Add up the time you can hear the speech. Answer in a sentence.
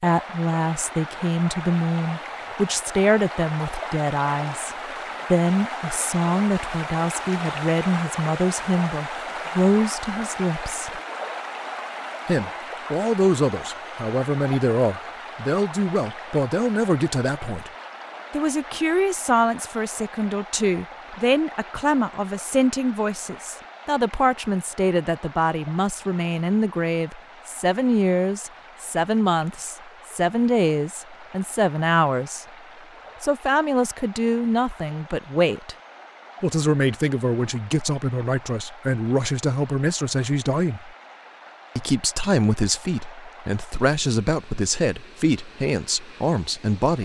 You can hear the speech for 43 seconds altogether.